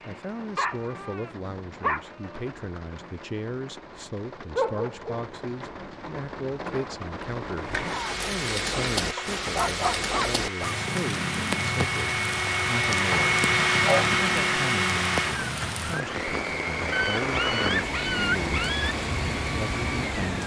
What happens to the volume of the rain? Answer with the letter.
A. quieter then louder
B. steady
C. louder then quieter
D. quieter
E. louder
E.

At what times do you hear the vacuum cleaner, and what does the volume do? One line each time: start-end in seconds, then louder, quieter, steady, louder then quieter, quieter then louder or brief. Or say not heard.
7.7-20.3 louder then quieter.